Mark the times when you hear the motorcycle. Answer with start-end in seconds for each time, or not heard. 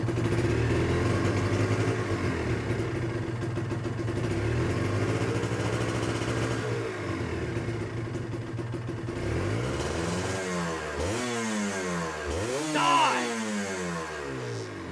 0.0-14.8.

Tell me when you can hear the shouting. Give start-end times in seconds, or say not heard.
12.7-13.3.